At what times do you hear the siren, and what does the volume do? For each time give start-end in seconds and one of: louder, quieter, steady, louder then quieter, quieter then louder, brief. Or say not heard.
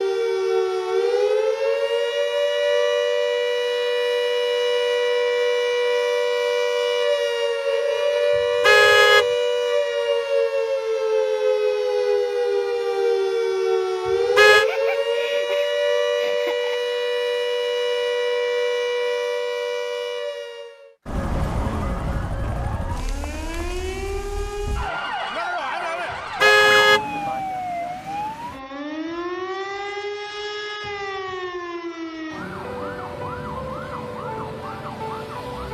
0.0-35.6 quieter.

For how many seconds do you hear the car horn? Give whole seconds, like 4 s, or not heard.
2 s.